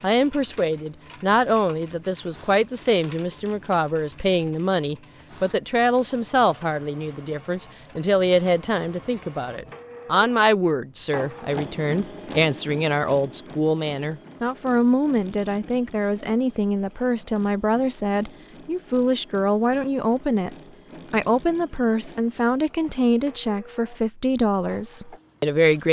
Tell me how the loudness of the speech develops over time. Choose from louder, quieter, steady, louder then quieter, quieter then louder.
steady.